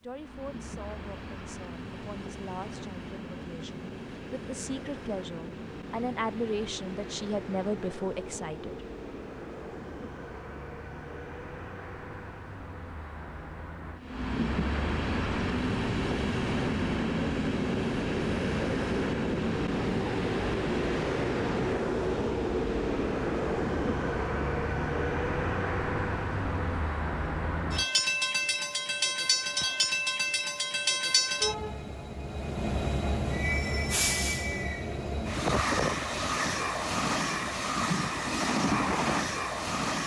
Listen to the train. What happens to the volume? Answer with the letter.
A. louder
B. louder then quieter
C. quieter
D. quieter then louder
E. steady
A.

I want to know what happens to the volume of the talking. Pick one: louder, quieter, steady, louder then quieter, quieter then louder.
louder.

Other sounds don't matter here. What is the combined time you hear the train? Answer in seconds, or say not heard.
40 s.